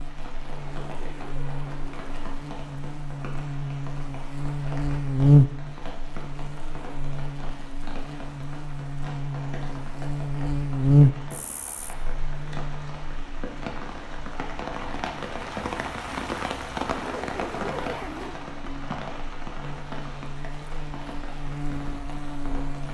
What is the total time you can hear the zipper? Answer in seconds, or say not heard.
3 s.